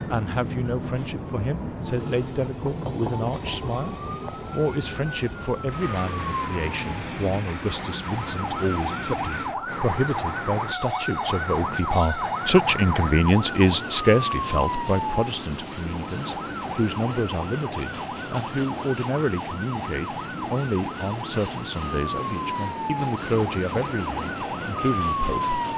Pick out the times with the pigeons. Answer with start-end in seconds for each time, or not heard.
not heard.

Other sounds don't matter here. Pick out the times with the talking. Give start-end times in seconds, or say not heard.
0.1-25.6.